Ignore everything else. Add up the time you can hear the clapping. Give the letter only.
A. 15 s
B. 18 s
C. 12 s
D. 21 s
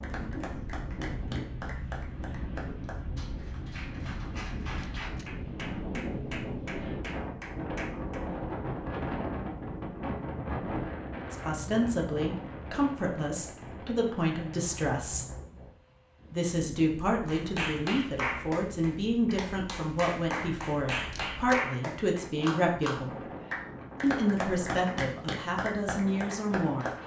B.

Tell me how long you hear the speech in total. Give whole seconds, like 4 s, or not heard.
14 s.